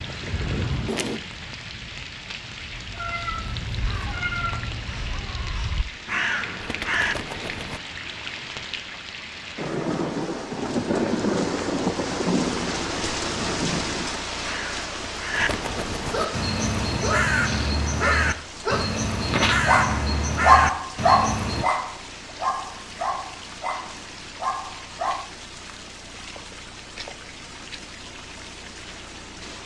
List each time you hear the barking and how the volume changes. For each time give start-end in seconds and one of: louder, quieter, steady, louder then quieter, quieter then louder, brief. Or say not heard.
15.9-25.2 louder then quieter.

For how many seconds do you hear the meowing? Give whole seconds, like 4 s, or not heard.
2 s.